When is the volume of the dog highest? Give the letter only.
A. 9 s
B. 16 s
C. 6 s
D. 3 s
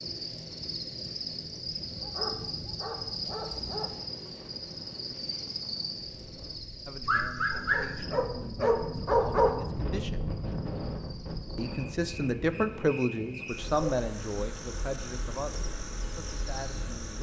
A.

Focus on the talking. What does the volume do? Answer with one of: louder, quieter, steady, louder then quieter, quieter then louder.
louder then quieter.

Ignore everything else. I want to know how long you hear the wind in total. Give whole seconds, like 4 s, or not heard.
17 s.